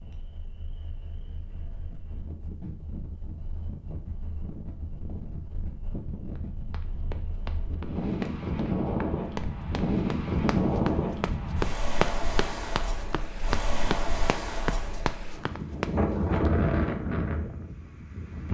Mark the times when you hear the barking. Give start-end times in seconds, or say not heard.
not heard.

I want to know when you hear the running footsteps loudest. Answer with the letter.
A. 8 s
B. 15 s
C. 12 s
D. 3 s
C.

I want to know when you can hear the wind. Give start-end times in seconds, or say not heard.
0.0-18.4.